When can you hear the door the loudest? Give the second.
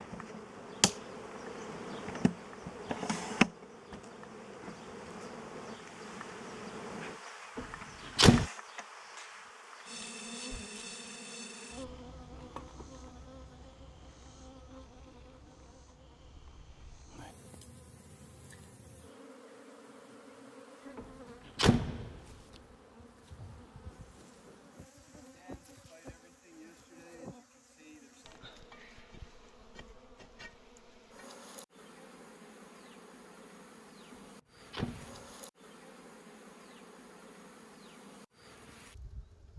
8 s.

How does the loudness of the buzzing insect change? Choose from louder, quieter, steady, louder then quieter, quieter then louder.
quieter.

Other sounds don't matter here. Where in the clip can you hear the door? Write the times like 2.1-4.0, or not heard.
7.5-8.4, 20.9-22.1, 34.1-35.2.